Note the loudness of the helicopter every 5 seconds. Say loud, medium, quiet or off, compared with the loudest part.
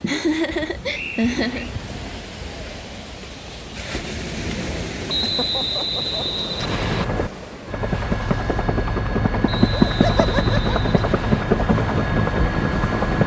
off, loud, loud.